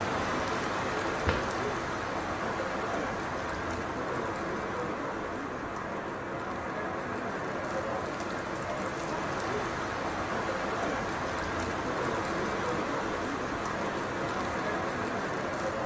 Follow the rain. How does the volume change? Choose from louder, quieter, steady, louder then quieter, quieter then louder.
steady.